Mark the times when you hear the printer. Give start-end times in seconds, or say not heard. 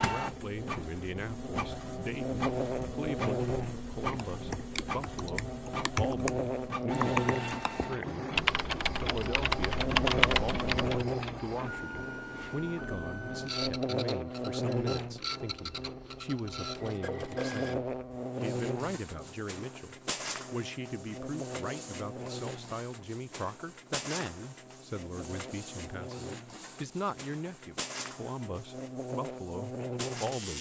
0.0-30.5.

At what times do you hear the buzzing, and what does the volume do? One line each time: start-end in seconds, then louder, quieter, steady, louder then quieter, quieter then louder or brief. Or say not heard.
0.1-30.5 quieter.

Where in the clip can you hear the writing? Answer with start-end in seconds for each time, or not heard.
not heard.